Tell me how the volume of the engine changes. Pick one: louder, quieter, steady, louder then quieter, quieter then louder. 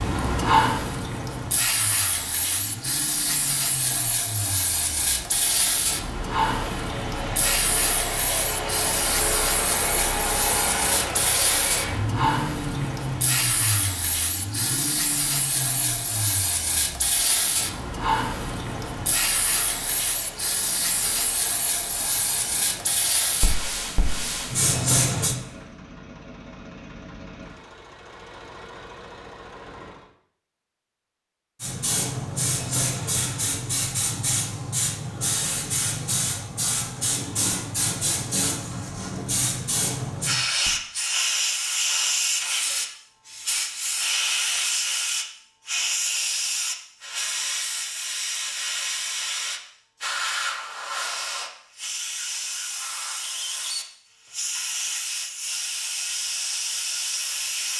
louder then quieter.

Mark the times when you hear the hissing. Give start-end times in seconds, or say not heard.
0.0-25.4, 31.6-57.7.